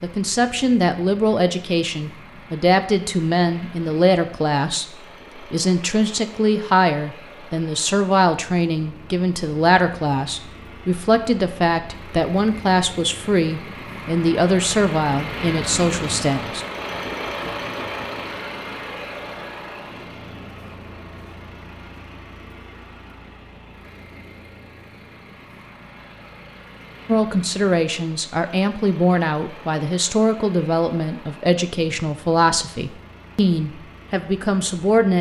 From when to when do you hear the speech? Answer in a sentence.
The speech can be heard from 0.0 to 16.6 s and from 27.1 to 35.1 s.